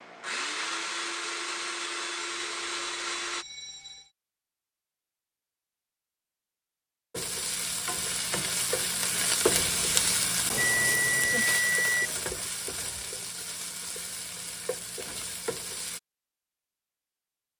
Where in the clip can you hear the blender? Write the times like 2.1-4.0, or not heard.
0.0-3.5.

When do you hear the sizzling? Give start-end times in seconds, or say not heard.
7.1-16.0.